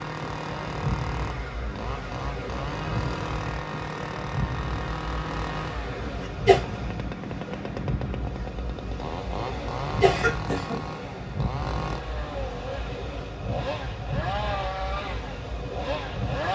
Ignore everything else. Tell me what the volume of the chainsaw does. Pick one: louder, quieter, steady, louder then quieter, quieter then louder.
steady.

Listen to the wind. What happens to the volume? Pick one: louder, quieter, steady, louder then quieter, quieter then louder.
steady.